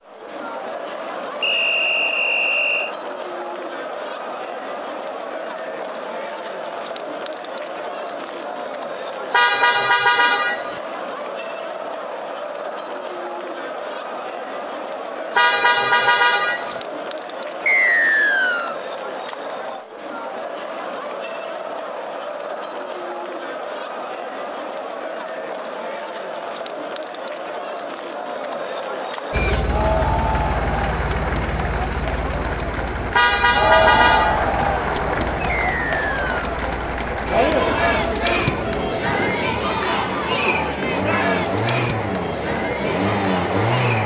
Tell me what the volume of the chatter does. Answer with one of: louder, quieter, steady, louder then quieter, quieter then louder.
louder.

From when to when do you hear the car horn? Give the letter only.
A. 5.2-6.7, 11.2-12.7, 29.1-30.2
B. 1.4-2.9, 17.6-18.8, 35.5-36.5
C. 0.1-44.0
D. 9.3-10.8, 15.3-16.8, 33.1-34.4
D.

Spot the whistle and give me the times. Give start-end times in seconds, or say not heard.
1.4-2.9, 17.6-18.8, 35.5-36.5.